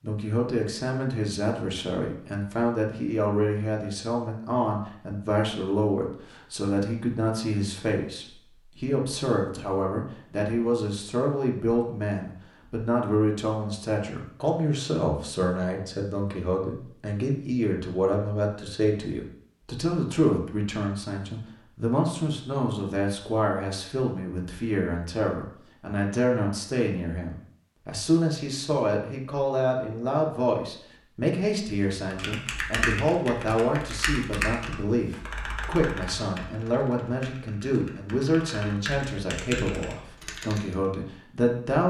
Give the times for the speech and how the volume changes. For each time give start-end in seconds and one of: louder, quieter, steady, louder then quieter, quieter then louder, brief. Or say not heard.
0.0-41.8 steady.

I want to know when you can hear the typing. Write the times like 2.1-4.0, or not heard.
31.8-40.6.